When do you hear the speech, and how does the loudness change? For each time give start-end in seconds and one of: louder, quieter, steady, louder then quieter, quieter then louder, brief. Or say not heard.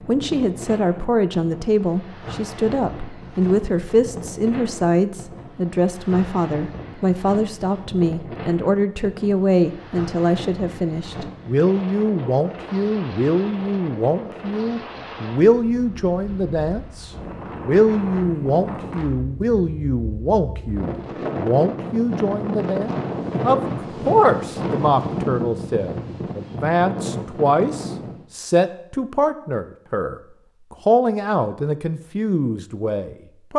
0.0-33.5 steady.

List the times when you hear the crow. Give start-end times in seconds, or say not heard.
not heard.